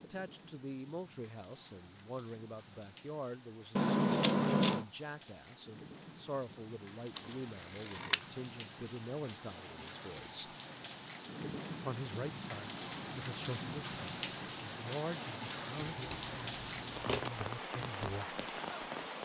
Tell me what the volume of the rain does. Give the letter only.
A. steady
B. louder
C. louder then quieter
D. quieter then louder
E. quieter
B.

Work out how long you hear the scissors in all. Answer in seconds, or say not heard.
4 s.